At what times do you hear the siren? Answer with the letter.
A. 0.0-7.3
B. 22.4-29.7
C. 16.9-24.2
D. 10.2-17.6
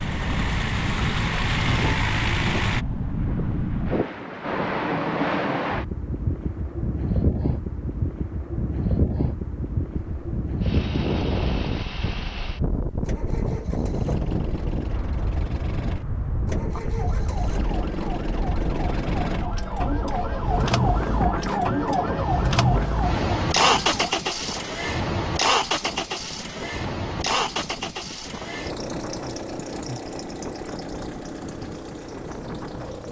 C.